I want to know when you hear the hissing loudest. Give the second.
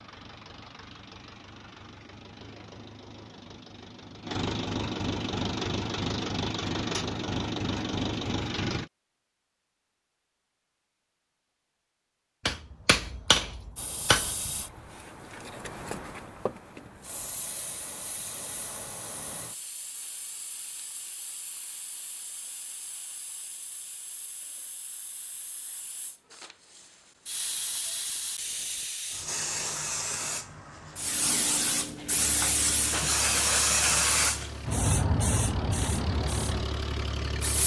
34 s.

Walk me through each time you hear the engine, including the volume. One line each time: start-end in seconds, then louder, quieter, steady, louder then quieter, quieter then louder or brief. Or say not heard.
0.0-8.9 louder
32.1-37.6 louder.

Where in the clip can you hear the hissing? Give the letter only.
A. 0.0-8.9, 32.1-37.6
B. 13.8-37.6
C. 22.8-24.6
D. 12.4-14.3
B.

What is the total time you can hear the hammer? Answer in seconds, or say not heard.
2 s.